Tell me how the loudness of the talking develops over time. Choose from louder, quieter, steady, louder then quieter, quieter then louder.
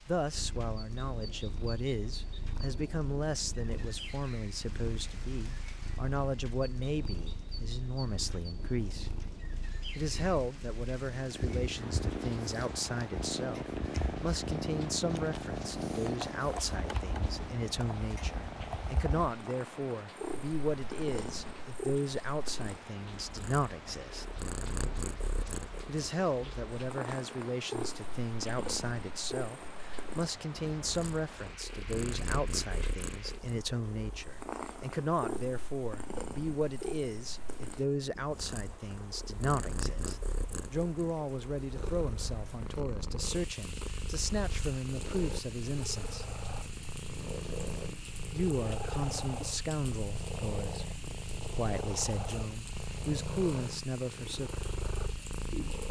steady.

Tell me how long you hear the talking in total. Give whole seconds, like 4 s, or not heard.
50 s.